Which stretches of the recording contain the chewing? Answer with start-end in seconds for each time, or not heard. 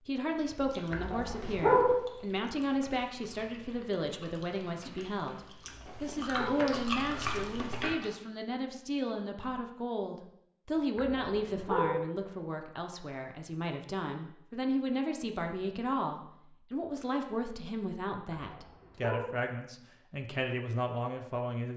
0.2-8.1.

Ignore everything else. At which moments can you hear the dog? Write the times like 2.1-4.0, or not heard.
0.9-1.9, 5.7-6.7, 10.9-12.0, 18.4-19.4.